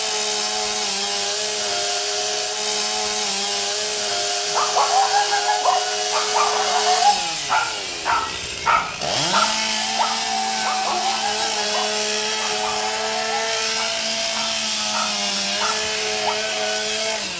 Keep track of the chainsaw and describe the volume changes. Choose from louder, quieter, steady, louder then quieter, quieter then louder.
steady.